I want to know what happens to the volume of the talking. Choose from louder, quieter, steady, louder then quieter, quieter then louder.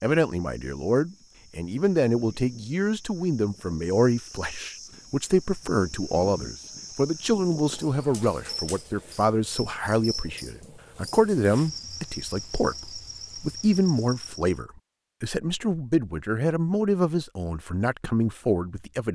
steady.